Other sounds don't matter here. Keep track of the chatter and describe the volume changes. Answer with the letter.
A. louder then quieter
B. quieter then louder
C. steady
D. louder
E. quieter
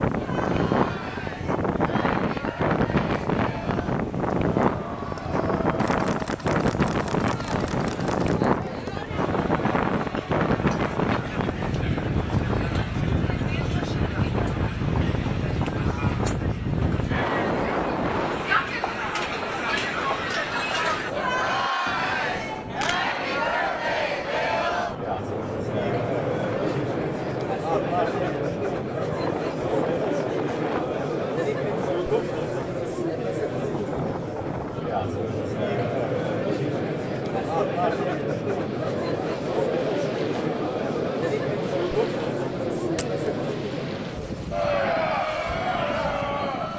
D.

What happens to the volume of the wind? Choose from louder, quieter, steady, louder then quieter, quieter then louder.
quieter.